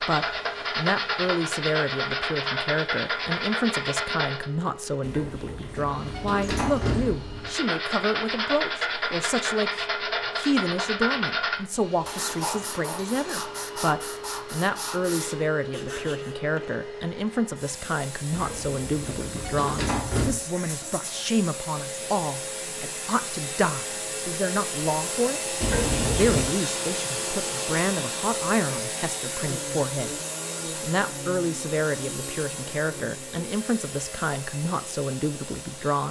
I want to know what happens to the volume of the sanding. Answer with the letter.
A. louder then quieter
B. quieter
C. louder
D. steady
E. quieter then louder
B.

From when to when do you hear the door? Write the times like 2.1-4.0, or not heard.
5.0-7.5, 18.3-20.4, 25.6-26.6.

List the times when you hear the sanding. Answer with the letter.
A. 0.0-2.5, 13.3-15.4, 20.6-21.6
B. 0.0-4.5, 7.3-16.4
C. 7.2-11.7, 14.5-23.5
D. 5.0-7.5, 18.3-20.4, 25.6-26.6
B.